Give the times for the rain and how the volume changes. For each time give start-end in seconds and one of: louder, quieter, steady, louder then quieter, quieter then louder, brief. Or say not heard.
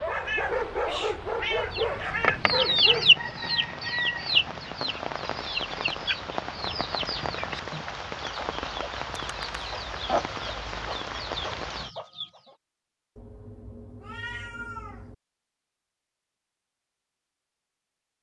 0.0-11.9 louder.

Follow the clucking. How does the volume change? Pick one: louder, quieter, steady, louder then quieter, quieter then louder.
quieter then louder.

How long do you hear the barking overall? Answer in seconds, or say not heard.
3 s.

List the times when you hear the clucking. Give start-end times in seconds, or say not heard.
1.7-12.5.